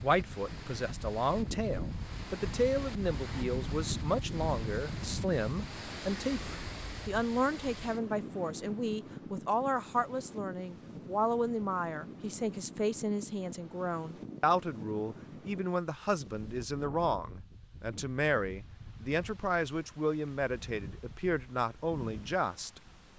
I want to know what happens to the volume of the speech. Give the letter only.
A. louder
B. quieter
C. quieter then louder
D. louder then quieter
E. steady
E.